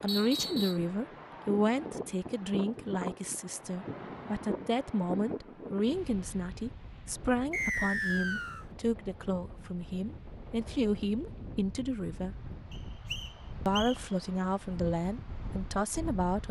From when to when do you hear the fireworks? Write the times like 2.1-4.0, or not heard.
not heard.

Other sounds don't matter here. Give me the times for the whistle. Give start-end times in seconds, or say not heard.
0.1-0.8, 7.5-8.7, 12.7-13.9.